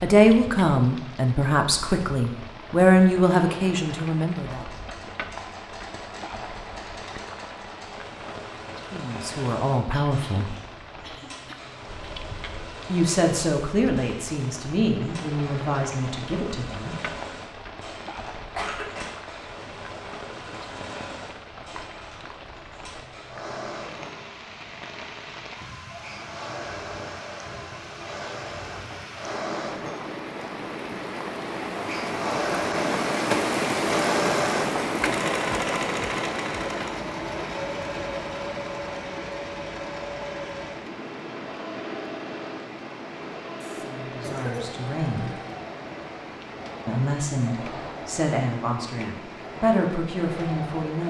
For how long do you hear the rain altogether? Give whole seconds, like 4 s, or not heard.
51 s.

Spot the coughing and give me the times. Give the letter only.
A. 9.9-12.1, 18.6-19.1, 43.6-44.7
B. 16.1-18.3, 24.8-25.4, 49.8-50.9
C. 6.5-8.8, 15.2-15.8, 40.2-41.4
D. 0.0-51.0
A.